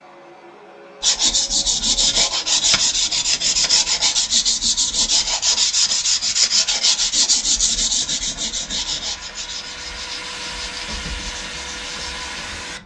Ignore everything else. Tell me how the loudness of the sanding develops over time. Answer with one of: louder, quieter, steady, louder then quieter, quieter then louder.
quieter.